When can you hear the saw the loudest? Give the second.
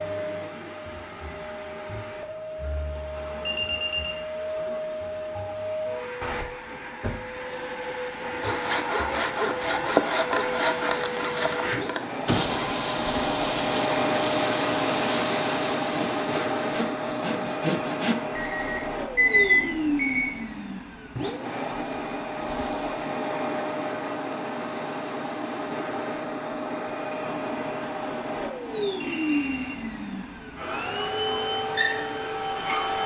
10 s.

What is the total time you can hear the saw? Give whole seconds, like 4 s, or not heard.
10 s.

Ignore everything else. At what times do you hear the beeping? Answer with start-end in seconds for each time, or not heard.
3.5-4.2, 18.4-20.3, 29.0-29.9.